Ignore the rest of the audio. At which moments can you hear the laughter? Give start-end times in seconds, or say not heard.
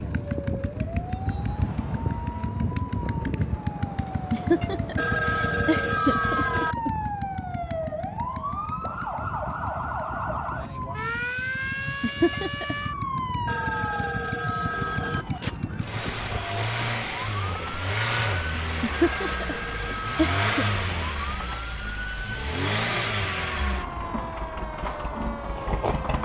4.3-6.9, 12.0-12.8, 18.8-20.7.